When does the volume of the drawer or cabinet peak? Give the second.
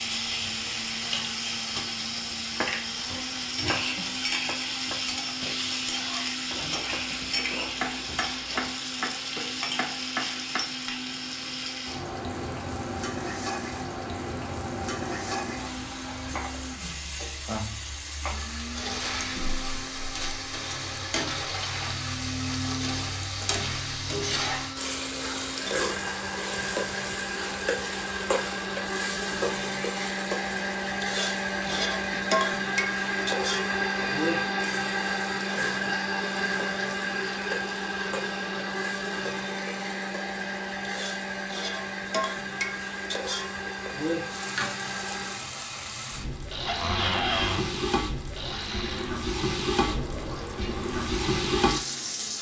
47 s.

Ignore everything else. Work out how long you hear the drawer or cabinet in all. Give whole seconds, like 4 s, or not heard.
4 s.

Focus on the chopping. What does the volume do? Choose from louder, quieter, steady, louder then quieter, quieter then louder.
quieter then louder.